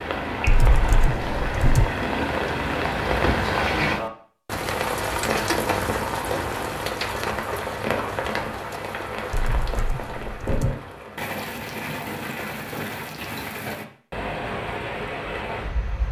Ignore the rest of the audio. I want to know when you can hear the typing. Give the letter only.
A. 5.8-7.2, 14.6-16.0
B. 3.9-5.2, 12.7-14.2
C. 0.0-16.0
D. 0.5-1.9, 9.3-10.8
D.